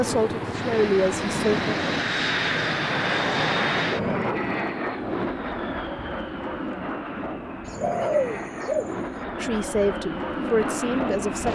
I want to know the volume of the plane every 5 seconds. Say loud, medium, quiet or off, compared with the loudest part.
loud, medium, loud.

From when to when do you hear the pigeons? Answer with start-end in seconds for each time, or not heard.
7.7-9.2.